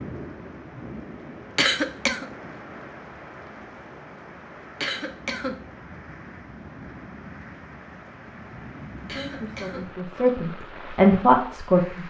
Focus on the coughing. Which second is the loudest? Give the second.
2 s.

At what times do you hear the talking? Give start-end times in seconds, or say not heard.
9.1-12.0.